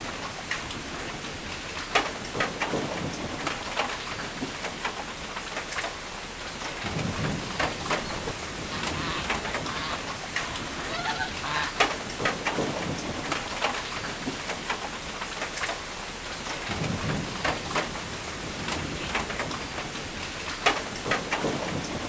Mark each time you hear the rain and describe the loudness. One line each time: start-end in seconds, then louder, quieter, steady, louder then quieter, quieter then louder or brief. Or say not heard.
0.0-22.0 steady.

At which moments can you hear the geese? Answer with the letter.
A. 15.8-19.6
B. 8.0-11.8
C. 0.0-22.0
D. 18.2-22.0
B.